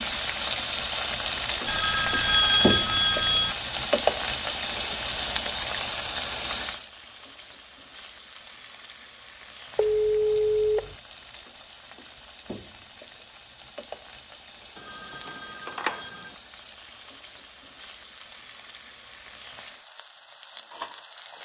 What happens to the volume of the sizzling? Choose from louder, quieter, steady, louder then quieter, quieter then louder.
quieter.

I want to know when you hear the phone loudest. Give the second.
2 s.